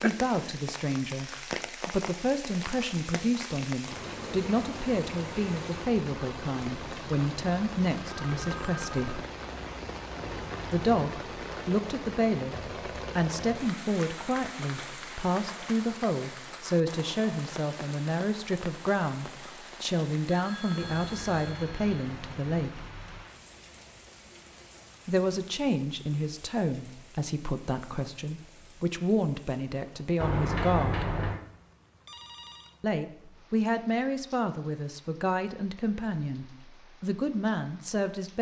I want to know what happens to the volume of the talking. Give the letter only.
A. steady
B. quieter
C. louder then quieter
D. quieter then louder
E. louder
A.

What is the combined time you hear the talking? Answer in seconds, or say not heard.
33 s.